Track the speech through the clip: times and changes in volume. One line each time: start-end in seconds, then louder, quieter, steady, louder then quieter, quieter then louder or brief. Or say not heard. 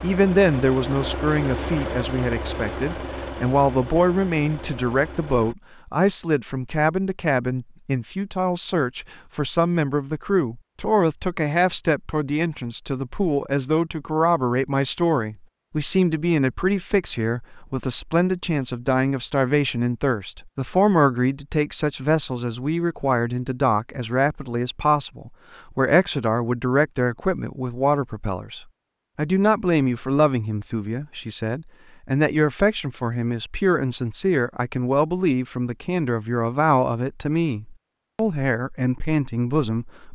0.0-40.0 steady.